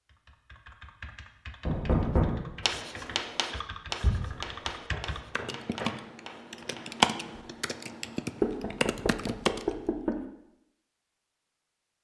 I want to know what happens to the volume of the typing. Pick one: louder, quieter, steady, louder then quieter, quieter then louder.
louder then quieter.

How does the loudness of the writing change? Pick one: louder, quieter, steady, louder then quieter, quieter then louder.
quieter.